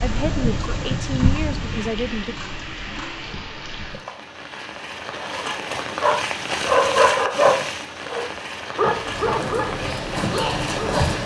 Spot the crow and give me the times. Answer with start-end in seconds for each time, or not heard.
not heard.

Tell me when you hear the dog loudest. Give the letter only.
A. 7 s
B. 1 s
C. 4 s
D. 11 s
A.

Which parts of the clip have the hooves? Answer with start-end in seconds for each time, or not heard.
0.0-3.4, 9.0-11.2.